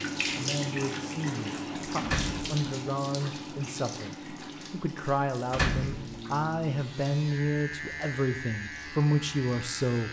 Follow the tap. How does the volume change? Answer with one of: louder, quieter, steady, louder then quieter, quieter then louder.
quieter.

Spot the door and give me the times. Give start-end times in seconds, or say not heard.
2.0-2.5, 5.5-6.2.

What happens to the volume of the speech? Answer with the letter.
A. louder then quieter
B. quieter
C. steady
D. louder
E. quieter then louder
D.